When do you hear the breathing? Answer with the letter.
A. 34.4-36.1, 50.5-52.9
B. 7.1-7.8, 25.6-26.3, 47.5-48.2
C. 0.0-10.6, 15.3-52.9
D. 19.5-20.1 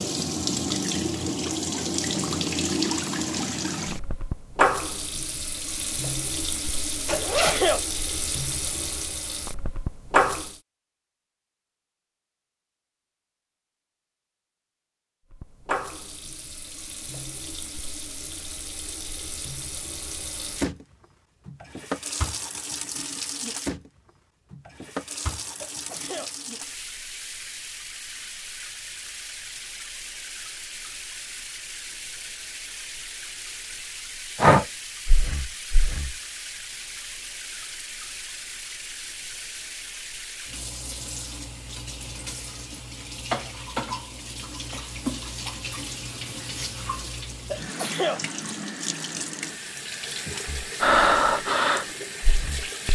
A.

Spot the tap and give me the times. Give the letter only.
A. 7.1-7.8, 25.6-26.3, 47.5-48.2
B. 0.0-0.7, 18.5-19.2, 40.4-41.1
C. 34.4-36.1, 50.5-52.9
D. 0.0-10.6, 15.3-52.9
D.